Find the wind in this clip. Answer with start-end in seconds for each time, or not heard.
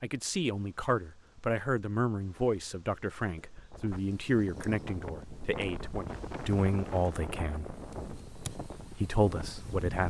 3.5-10.0.